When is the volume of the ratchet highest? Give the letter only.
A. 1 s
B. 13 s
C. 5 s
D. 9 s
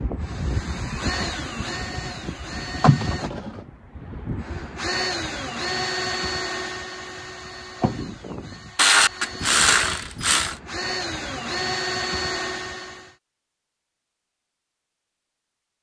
D.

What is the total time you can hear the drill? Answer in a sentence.
The drill can be heard for 13 seconds in total.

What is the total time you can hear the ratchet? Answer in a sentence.
You can hear the ratchet for 2 seconds altogether.